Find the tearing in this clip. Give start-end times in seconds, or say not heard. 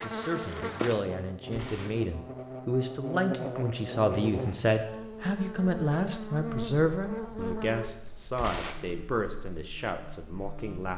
1.5-2.0, 8.3-8.9.